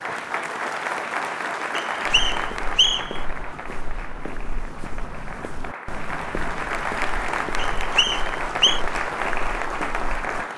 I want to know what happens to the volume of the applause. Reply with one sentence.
The loudness of the applause goes down, then up.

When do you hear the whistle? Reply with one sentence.
You can hear the whistle from 1.8 to 3.2 s and from 7.8 to 8.8 s.